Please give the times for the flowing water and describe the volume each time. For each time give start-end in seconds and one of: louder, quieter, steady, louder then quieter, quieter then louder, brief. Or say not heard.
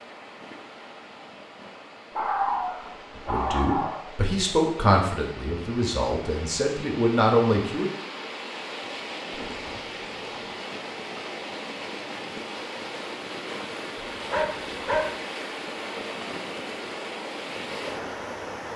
0.0-18.7 louder.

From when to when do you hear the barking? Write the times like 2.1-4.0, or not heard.
2.1-4.0, 9.4-10.2, 13.9-15.1.